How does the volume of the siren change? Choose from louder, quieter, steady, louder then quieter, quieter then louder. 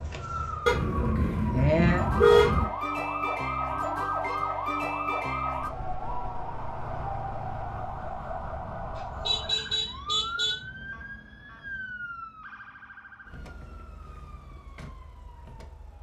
quieter.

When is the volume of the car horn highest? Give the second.
2 s.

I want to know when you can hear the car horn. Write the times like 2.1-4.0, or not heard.
0.7-2.6, 8.9-10.6.